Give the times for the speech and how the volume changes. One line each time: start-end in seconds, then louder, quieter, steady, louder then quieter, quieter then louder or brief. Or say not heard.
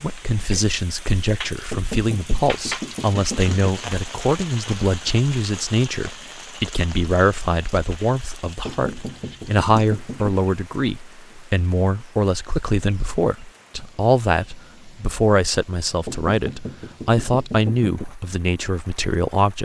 0.0-19.5 steady.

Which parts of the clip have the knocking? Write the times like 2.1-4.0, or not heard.
1.7-3.7, 8.7-10.3, 16.1-18.1.